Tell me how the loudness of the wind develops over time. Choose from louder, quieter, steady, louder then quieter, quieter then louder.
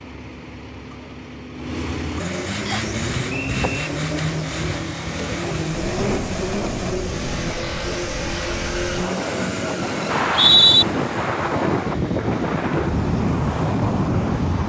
louder.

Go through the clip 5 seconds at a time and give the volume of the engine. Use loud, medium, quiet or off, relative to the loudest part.
loud, loud, medium.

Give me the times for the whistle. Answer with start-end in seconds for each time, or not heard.
2.6-3.9, 10.1-10.8.